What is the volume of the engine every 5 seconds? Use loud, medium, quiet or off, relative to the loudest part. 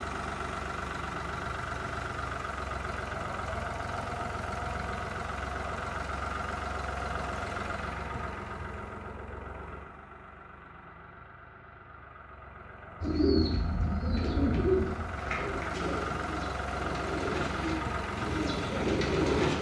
loud, loud, medium, loud.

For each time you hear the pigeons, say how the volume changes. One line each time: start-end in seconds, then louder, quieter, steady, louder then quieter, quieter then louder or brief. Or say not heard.
13.0-19.5 quieter then louder.